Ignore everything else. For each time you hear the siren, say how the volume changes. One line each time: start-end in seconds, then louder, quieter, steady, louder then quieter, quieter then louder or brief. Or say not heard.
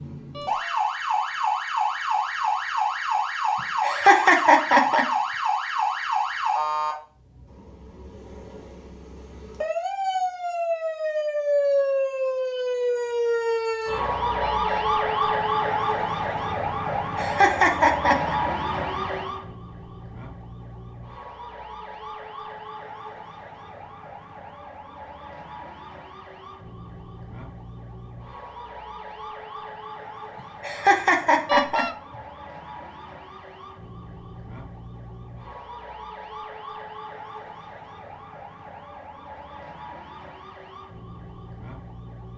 0.0-42.3 quieter.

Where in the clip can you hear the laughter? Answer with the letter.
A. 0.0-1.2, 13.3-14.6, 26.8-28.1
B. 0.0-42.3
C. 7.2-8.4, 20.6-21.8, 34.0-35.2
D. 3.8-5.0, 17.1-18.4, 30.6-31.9
D.